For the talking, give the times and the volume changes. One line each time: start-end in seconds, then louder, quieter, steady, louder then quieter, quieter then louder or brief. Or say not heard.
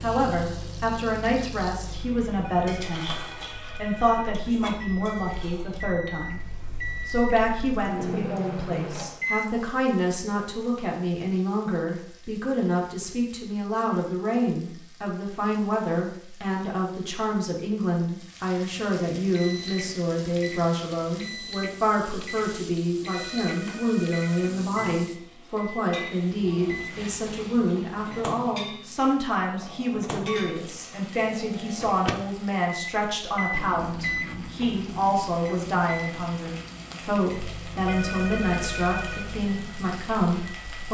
0.0-40.8 steady.